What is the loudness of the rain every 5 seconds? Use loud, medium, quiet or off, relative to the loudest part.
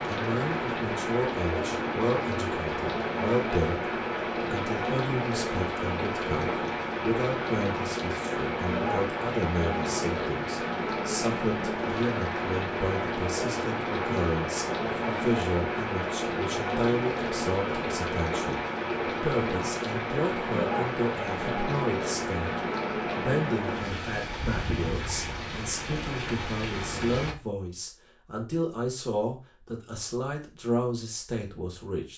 loud, loud, loud, loud, loud, medium, off.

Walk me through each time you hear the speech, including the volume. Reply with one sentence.
The speech can be heard from 0.1 to 32.1 s, at a steady volume.